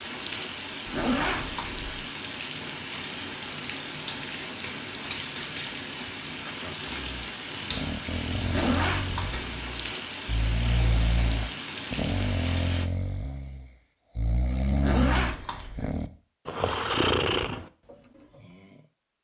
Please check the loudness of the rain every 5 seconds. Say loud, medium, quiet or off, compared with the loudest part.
loud, loud, loud, off.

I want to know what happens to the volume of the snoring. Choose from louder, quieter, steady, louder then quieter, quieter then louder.
louder.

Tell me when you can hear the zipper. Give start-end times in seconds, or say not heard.
0.8-1.9, 8.4-9.3, 14.8-15.9.